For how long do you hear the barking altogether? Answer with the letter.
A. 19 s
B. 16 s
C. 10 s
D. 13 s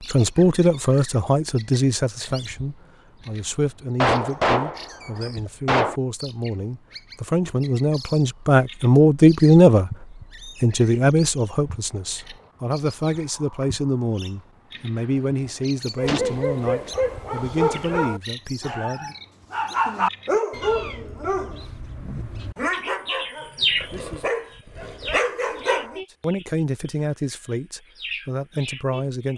C.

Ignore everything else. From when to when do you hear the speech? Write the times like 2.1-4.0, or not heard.
0.1-9.9, 10.6-19.1, 26.2-29.3.